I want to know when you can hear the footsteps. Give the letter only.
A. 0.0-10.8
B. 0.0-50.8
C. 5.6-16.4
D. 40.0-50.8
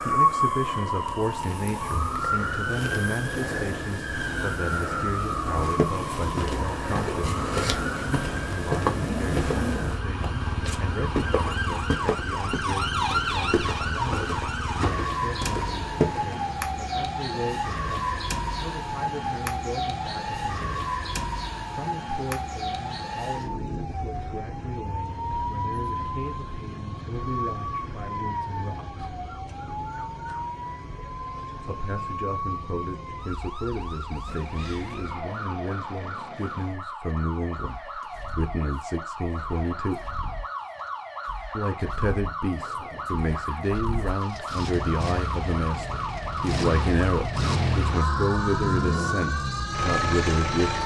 C.